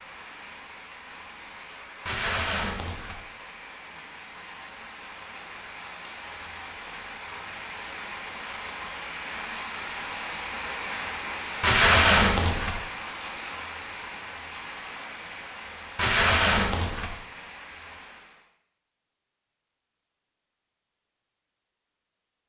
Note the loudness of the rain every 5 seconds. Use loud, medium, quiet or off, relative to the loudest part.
medium, loud, loud, medium, off.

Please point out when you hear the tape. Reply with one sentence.
The tape can be heard from 2.0 to 3.2 s, from 11.6 to 12.8 s and from 15.9 to 17.1 s.